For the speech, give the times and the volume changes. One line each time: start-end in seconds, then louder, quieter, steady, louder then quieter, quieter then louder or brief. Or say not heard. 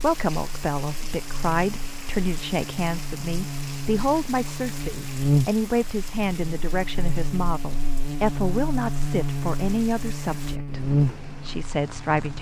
0.0-12.3 steady.